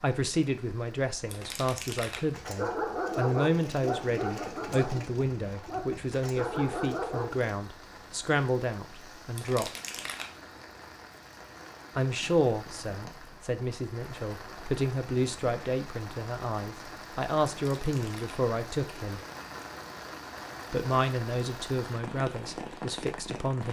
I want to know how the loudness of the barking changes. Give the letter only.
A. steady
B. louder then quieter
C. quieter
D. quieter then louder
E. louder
D.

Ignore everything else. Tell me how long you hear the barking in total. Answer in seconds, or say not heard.
5 s.